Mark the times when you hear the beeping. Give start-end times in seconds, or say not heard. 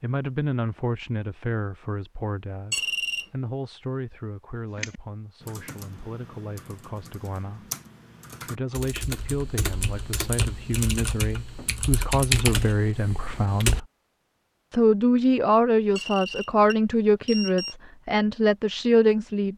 2.7-3.2, 15.9-17.8.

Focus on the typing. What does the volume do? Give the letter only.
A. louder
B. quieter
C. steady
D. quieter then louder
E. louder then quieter
A.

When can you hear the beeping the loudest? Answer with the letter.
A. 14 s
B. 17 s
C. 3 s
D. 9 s
C.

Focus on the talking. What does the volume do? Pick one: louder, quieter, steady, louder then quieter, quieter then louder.
quieter then louder.